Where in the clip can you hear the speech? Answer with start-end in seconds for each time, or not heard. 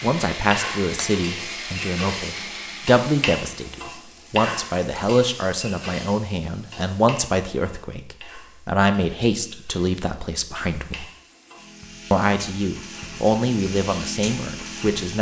0.0-11.1, 12.1-15.1.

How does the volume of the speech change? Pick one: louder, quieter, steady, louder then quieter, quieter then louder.
steady.